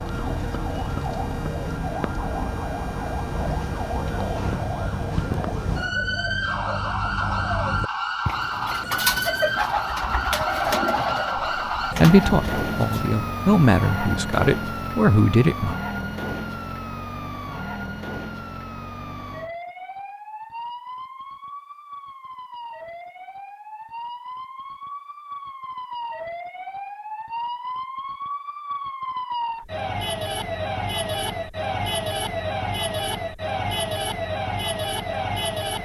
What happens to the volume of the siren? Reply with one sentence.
The volume of the siren goes down, then up.